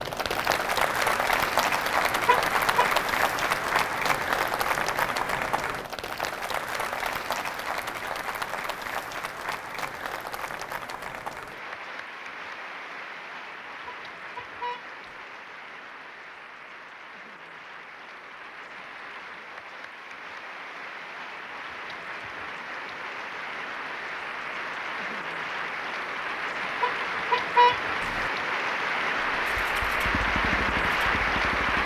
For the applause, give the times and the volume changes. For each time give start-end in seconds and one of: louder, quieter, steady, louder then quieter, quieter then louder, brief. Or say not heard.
0.0-31.8 quieter then louder.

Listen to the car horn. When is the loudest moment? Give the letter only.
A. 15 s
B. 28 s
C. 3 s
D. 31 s
B.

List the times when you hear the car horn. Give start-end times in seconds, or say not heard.
2.2-2.9, 13.8-15.1, 26.8-28.3.